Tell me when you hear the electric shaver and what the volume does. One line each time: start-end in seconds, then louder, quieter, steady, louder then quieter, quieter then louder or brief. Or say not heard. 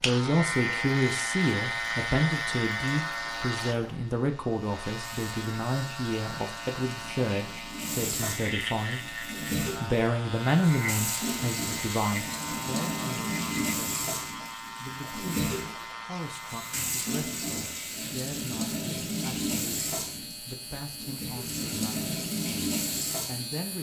0.0-23.7 quieter.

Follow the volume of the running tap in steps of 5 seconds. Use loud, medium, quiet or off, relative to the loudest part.
quiet, medium, loud, loud, loud.